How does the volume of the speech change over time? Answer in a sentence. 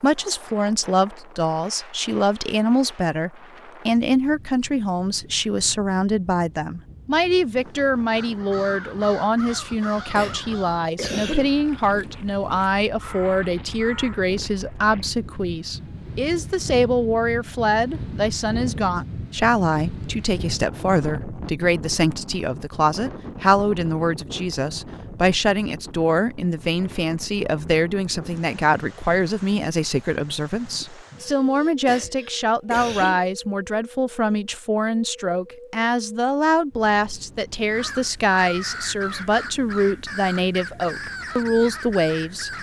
The loudness of the speech stays about the same.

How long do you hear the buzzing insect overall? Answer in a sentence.
The buzzing insect can't be heard in this clip.